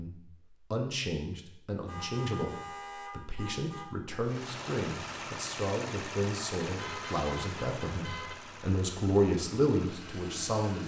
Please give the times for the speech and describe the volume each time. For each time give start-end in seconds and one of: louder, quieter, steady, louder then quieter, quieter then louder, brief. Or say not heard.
0.0-10.8 louder.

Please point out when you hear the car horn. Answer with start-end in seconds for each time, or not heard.
1.9-3.9, 6.8-8.3.